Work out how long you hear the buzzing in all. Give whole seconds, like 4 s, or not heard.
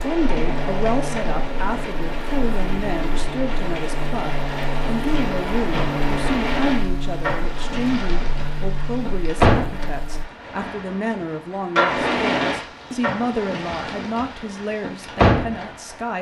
10 s.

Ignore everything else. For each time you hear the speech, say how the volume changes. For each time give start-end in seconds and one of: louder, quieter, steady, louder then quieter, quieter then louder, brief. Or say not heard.
0.0-16.1 steady.